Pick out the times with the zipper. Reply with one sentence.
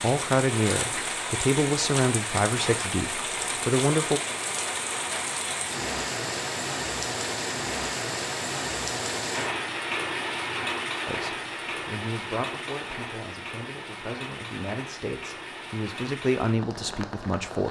You can't hear the zipper here.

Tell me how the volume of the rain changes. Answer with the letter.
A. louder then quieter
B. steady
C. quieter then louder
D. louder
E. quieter
E.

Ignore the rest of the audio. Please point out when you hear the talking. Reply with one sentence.
You can hear the talking from 0.0 to 4.2 s and from 11.1 to 17.6 s.